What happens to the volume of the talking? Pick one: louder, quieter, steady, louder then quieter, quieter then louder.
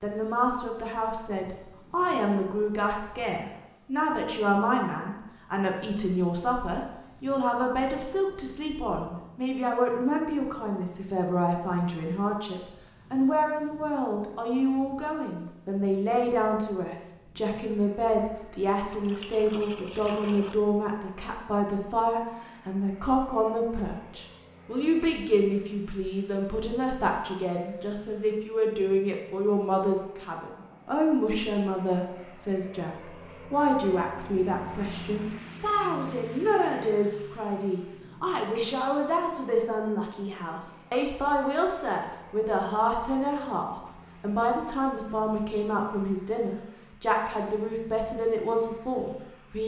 steady.